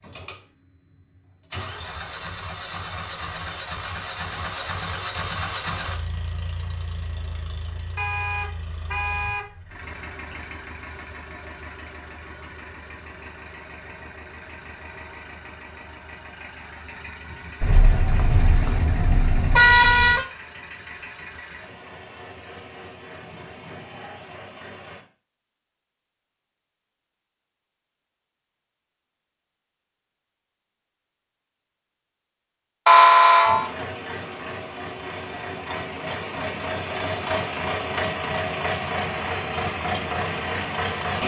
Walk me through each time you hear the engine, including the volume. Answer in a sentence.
The engine can be heard from 0.0 to 25.1 s, getting quieter; and from 33.4 to 41.2 s, getting louder.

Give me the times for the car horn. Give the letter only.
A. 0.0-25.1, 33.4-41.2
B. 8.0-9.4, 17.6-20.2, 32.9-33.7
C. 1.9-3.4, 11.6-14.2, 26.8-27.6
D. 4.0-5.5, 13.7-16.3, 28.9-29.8
B.